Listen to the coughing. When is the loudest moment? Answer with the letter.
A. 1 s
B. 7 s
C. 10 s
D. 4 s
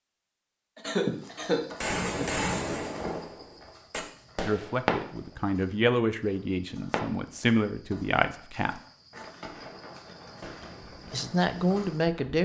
A.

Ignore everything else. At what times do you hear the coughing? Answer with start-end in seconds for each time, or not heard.
0.8-2.3.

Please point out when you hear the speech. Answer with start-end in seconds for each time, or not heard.
4.5-8.8, 11.1-12.3.